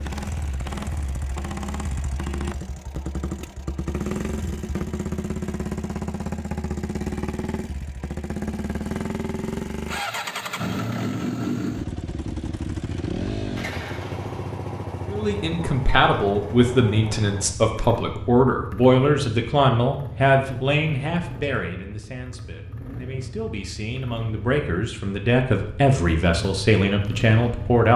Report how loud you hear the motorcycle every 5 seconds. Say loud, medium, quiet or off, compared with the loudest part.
loud, loud, loud, medium, medium, medium.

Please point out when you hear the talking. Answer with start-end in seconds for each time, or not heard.
15.1-27.9.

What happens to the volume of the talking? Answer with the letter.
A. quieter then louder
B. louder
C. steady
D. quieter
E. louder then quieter
A.